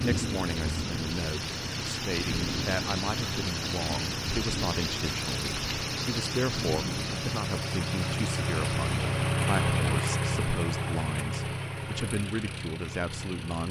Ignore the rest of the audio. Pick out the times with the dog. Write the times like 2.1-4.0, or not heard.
not heard.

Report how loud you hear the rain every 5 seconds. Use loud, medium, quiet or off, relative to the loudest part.
loud, loud, off.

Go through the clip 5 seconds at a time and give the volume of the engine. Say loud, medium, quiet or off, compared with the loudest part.
medium, loud, loud.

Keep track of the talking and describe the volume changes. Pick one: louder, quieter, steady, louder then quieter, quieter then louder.
steady.